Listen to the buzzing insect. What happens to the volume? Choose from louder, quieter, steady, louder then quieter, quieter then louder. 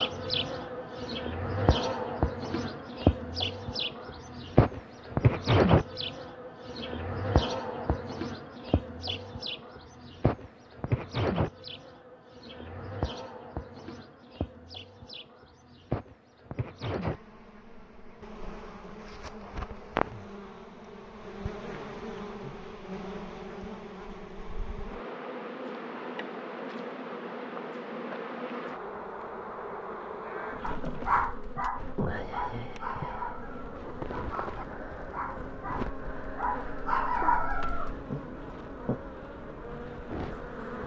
quieter.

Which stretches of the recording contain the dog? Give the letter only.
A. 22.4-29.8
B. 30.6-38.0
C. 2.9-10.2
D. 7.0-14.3
B.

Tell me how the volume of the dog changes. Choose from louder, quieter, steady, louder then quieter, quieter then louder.
quieter then louder.